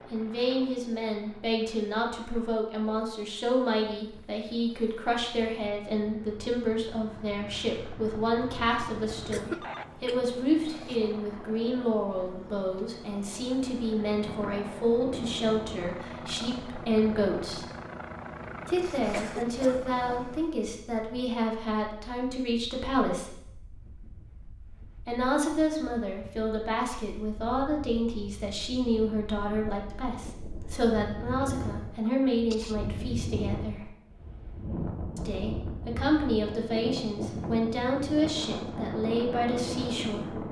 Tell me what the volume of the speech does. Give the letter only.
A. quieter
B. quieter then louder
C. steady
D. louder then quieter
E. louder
C.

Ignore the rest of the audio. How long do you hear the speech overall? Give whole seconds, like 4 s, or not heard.
36 s.